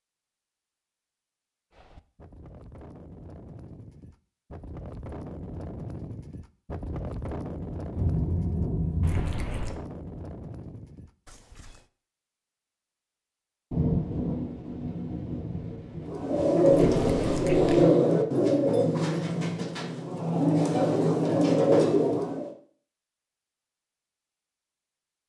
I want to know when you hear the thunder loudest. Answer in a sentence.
The loudest moment of the thunder is at 14 seconds.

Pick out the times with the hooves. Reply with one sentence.
The hooves can be heard from 1.7 to 11.8 s.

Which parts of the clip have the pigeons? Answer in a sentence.
The pigeons can be heard from 16.0 to 22.5 s.